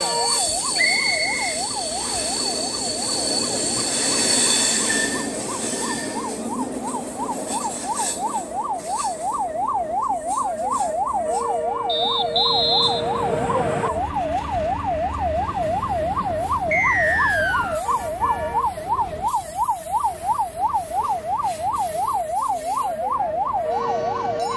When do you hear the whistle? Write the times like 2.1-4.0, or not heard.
0.8-2.2, 11.8-13.9, 16.7-17.8.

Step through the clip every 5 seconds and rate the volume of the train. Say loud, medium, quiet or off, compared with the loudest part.
loud, medium, quiet, quiet, quiet.